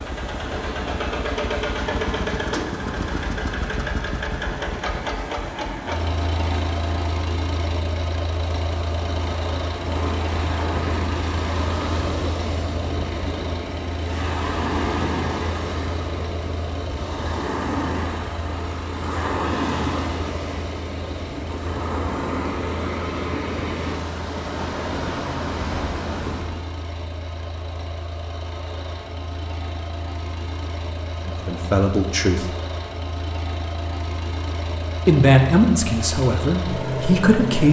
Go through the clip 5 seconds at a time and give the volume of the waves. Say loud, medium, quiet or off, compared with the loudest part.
medium, medium, loud, loud, loud, loud, off, off.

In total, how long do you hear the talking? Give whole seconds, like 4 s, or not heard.
4 s.